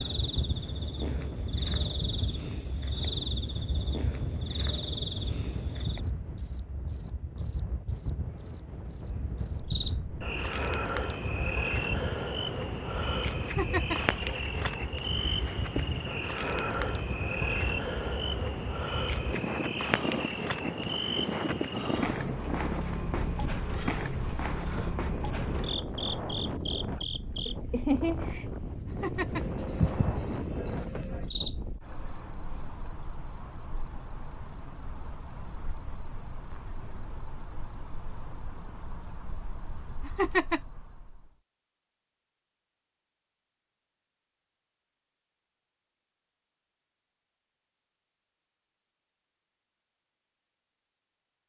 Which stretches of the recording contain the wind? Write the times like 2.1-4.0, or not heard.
0.0-31.8.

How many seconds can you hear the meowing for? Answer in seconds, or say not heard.
2 s.